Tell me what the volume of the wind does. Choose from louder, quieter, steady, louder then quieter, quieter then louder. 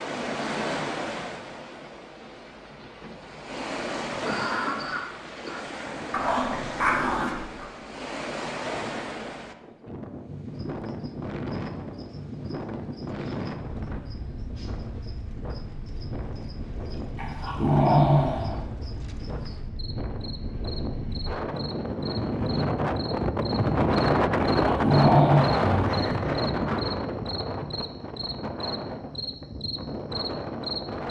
louder.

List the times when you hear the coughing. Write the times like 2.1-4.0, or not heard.
4.2-5.7, 25.9-26.3.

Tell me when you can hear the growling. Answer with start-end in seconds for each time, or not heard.
6.1-7.7, 17.1-18.6, 24.6-26.1.